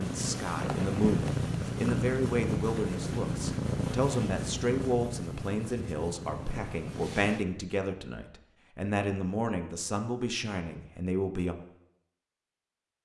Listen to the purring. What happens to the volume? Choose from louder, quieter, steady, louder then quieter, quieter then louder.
quieter.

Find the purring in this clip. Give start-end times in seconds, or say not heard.
0.0-7.5.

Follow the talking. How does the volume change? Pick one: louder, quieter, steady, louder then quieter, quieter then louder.
steady.